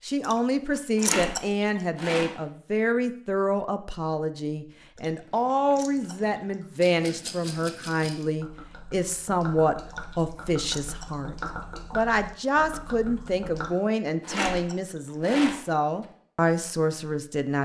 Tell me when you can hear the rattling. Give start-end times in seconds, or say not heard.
0.9-2.4, 6.8-8.2, 14.2-16.1.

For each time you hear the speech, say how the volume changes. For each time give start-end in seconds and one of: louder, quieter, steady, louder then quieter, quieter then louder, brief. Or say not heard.
0.0-17.6 steady.